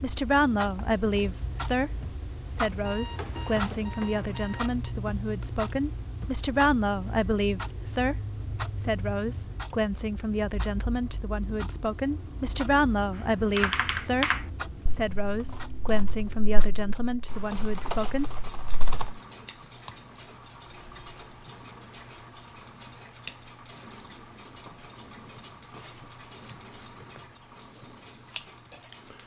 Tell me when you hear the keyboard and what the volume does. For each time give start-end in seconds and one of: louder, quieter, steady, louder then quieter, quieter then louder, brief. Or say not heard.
13.6-19.1 quieter then louder.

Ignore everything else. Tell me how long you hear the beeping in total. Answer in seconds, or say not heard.
3 s.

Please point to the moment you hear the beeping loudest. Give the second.
21 s.